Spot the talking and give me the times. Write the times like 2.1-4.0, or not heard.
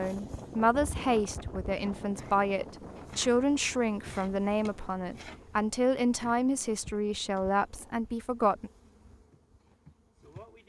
0.0-8.7.